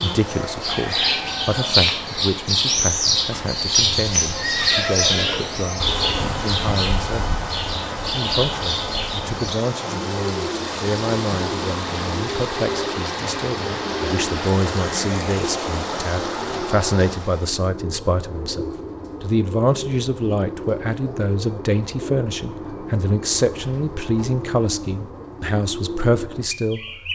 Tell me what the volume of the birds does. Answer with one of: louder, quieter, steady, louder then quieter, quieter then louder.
quieter.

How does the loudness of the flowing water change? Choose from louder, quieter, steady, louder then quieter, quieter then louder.
louder.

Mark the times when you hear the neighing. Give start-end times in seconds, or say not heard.
4.3-5.5.